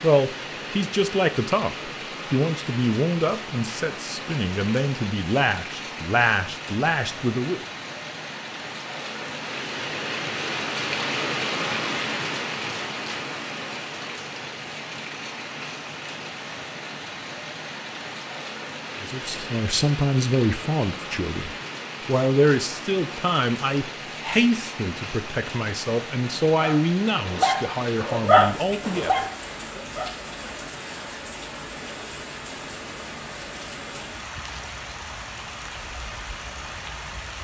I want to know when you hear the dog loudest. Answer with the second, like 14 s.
28 s.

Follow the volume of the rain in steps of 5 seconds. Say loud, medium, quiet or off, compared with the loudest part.
medium, medium, loud, medium, medium, medium, medium, medium.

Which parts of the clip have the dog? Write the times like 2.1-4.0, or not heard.
26.6-30.1.